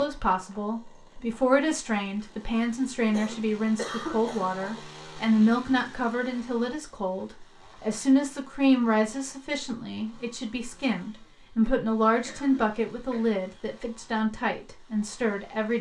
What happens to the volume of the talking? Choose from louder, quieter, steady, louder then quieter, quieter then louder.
steady.